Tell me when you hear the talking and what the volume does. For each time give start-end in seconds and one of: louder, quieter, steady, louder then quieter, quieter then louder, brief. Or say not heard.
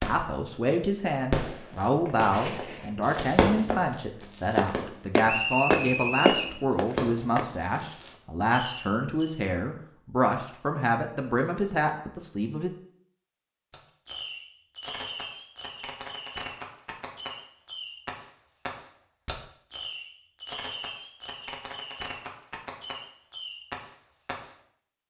0.0-12.7 steady.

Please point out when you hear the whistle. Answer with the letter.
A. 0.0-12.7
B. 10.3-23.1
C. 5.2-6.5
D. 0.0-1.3
C.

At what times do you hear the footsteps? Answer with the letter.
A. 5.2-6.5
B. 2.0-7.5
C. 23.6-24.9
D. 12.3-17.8
B.